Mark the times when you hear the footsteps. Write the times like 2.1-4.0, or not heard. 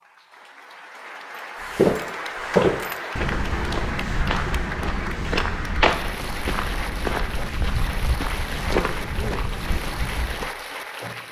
1.6-10.5.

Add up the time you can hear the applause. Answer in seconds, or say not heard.
11 s.